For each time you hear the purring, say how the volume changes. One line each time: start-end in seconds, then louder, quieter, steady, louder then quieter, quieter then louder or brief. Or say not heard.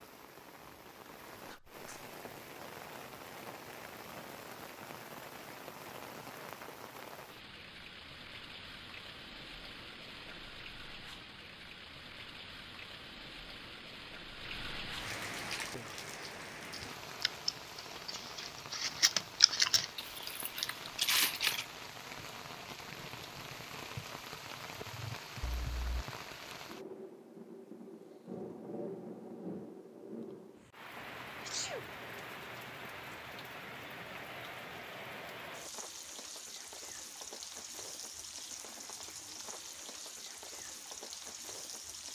not heard.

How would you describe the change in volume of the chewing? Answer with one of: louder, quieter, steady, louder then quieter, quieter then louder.
louder.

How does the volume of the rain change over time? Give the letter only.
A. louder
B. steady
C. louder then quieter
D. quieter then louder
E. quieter
B.